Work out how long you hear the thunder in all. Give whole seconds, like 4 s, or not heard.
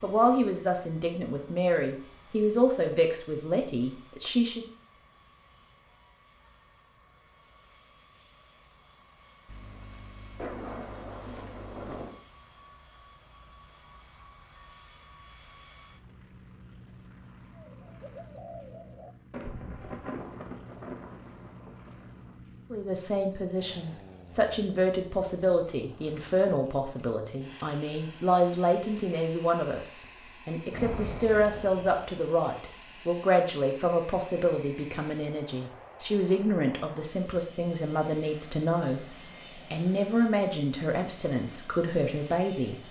7 s.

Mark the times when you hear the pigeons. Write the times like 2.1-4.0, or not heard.
17.6-19.9.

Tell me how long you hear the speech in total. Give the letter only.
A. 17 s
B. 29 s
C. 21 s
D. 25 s
D.